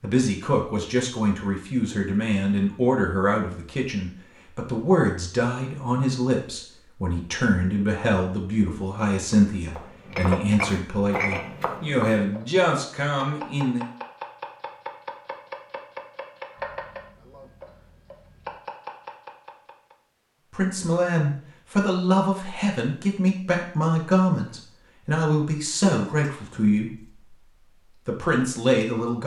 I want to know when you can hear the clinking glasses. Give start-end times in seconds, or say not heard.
10.1-11.4, 25.8-26.6.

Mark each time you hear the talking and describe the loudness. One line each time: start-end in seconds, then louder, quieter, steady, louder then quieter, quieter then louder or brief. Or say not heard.
0.0-13.8 steady
20.5-29.2 steady.